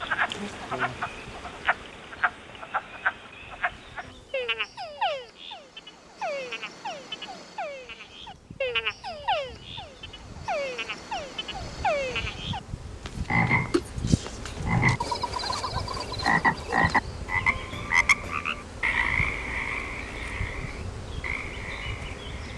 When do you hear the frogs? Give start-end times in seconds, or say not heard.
0.0-22.5.